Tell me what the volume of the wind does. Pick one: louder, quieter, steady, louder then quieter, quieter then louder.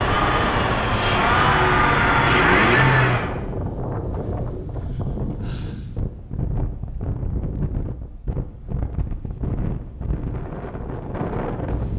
steady.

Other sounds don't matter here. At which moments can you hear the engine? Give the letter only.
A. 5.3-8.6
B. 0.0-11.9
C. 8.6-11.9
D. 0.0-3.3
D.